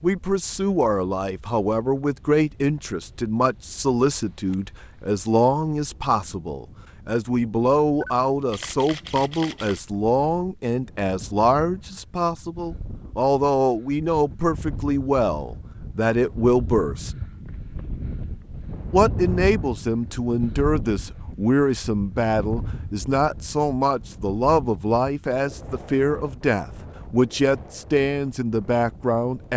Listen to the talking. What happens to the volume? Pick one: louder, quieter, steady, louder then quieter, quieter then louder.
steady.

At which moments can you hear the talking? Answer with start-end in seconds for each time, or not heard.
0.0-17.1, 18.9-29.5.